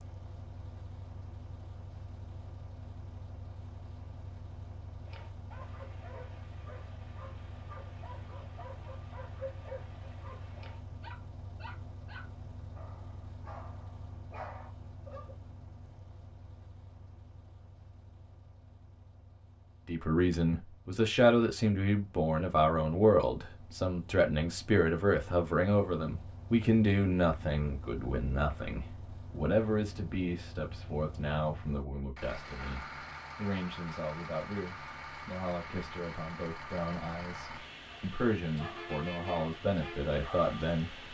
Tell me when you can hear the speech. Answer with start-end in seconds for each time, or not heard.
19.9-41.0.